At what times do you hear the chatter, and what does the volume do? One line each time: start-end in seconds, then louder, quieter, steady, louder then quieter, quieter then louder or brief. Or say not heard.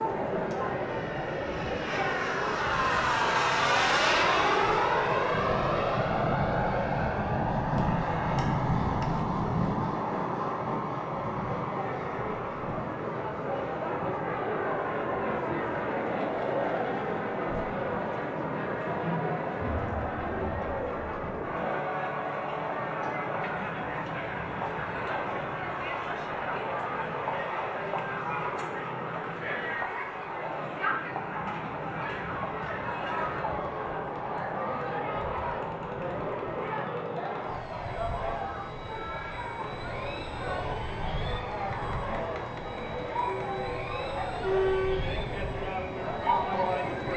0.0-47.1 steady.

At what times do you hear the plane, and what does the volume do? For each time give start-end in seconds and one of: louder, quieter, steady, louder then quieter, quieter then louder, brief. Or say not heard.
0.2-47.1 quieter.